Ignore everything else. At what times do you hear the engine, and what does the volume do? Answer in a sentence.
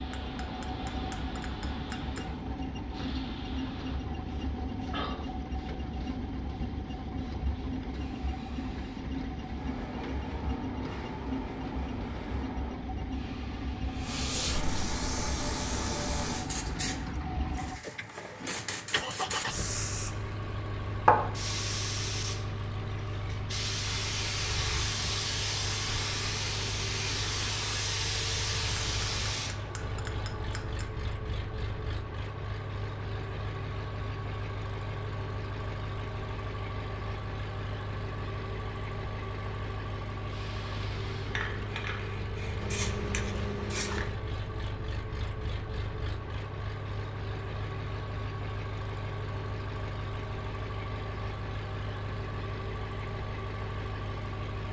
The engine can be heard from 0.0 to 54.6 s, at a steady volume.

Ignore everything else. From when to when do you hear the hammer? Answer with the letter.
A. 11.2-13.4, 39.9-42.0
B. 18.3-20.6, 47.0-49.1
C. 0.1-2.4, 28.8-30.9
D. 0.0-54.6
C.